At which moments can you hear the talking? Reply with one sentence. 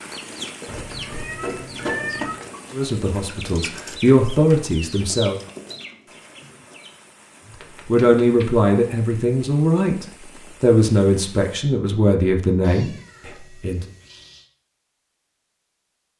You can hear the talking from 2.7 to 5.4 s and from 7.8 to 13.8 s.